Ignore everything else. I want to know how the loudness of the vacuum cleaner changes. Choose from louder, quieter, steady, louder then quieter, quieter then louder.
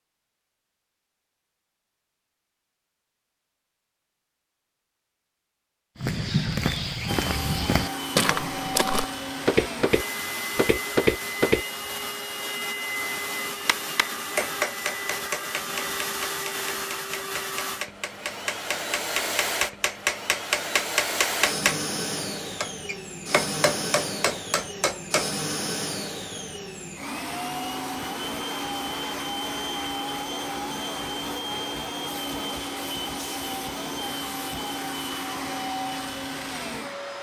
steady.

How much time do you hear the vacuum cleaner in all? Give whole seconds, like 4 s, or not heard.
30 s.